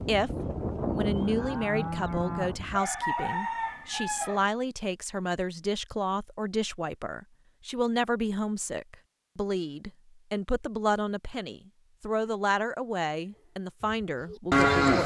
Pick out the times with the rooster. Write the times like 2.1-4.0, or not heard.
2.7-4.5.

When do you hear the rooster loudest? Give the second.
3 s.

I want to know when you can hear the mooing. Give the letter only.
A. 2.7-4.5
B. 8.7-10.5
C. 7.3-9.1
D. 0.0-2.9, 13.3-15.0
D.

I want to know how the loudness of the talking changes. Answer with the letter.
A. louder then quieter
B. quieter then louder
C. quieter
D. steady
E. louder
D.